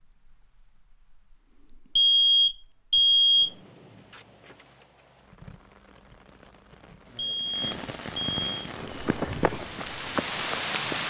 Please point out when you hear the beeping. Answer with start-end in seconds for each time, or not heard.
1.9-3.5, 7.2-8.7.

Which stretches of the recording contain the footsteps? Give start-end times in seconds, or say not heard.
8.8-11.0.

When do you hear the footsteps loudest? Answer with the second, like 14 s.
9 s.